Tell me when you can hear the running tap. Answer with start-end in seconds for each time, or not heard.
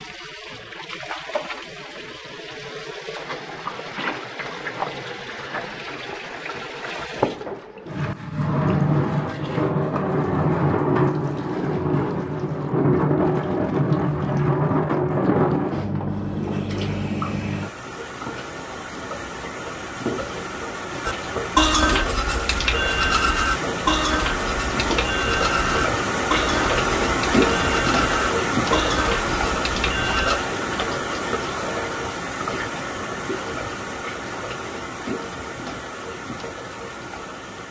0.0-37.6.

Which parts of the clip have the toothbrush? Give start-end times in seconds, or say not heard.
21.1-30.4.